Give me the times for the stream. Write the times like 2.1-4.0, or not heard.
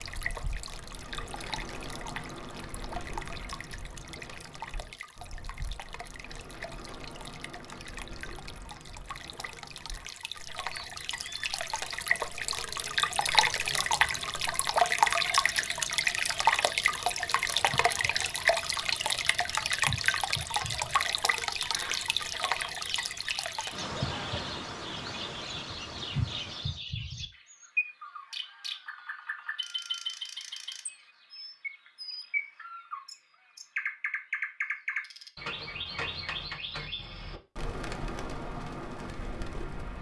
0.0-26.8.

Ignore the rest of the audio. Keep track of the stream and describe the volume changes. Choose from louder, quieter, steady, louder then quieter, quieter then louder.
louder then quieter.